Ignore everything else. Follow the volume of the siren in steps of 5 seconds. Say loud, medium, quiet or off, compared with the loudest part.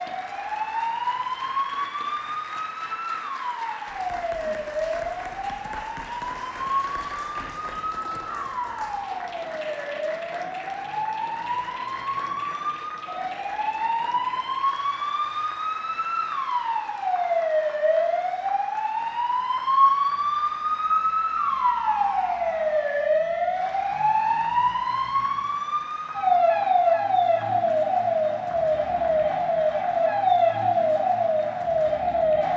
medium, medium, medium, loud, loud, loud, loud.